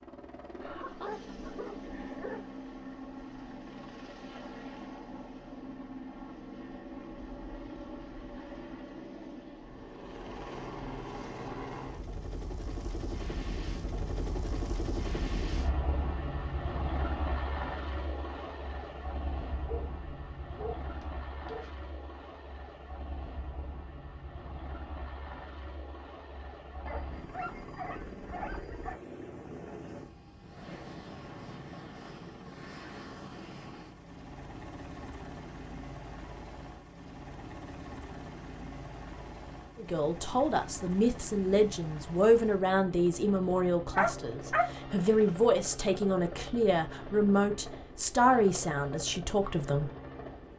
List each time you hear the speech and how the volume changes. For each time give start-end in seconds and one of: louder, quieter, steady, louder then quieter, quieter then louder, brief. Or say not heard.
39.8-49.9 steady.